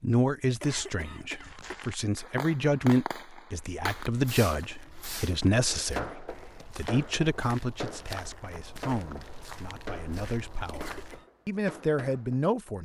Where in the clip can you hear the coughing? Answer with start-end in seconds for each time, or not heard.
0.6-1.9, 10.7-11.3.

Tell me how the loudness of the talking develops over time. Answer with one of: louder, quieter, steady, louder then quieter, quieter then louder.
quieter then louder.